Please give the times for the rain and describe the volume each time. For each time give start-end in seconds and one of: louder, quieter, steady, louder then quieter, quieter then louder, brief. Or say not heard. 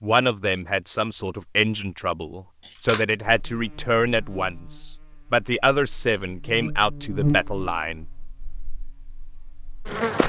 not heard.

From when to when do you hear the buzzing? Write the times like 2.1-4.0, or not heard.
3.2-10.2.